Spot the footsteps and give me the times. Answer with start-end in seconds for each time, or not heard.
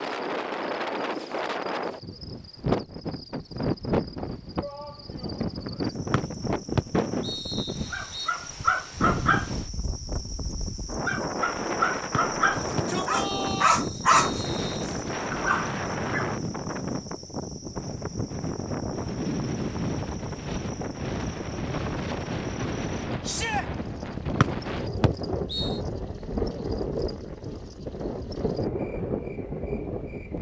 not heard.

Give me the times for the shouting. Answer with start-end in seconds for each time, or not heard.
4.5-5.5, 12.5-13.8, 23.2-23.6.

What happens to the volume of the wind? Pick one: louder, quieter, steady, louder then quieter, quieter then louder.
steady.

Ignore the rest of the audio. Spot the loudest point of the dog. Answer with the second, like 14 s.
14 s.